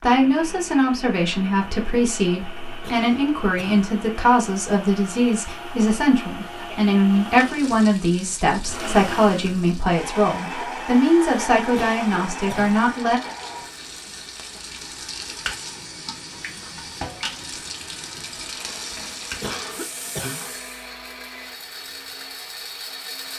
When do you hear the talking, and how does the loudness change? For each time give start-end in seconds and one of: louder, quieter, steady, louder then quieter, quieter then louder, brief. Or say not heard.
0.0-13.2 steady.